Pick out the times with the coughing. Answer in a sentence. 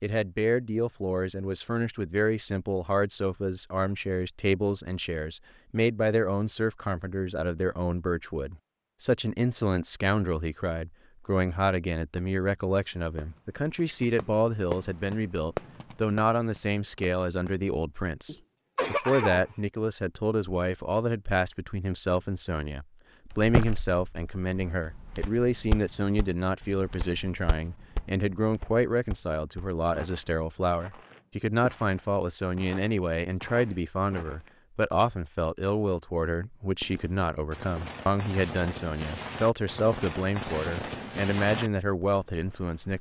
You can hear the coughing from 18.2 to 19.4 s.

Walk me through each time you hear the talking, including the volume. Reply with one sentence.
You can hear the talking from 0.0 to 42.9 s, at a steady volume.